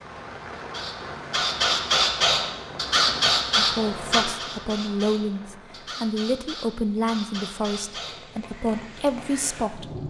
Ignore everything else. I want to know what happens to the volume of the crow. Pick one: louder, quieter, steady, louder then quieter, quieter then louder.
quieter.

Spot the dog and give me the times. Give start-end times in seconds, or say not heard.
not heard.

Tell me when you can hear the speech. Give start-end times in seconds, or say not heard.
3.5-10.0.